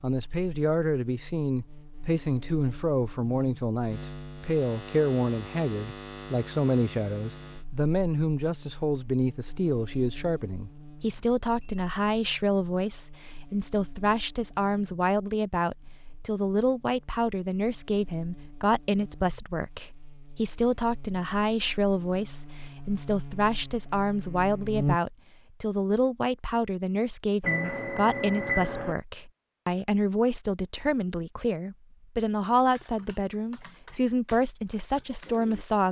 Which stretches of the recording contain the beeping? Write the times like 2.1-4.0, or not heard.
11.2-11.9, 27.4-28.9.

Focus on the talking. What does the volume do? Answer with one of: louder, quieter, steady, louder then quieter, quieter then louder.
steady.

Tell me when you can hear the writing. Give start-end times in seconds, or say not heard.
not heard.